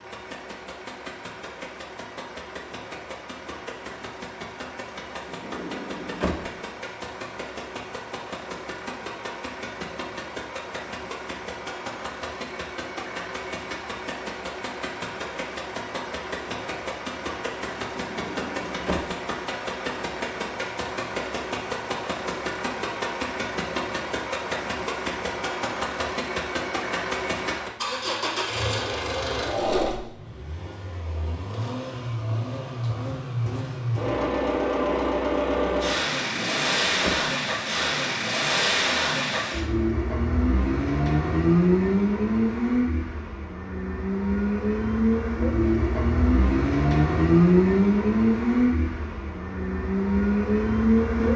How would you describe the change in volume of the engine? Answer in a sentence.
The loudness of the engine goes up.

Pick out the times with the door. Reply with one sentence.
The door can be heard from 5.2 to 6.5 s, from 17.9 to 19.1 s and from 36.2 to 37.3 s.